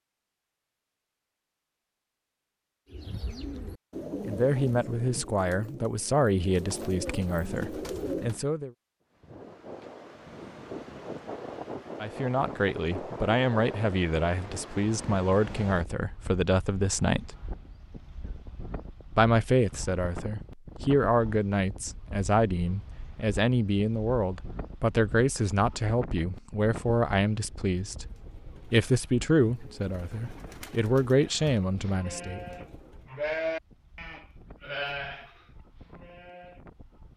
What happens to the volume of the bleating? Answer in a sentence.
The volume of the bleating goes up, then down.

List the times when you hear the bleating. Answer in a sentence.
You can hear the bleating from 31.2 to 36.6 s.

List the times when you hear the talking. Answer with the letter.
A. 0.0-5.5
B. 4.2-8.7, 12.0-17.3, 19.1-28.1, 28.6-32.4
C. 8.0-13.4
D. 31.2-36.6
B.